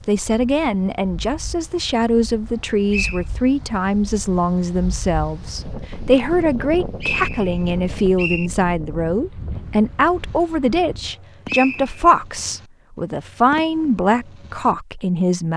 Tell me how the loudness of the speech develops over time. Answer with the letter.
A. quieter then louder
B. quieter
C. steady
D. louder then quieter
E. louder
C.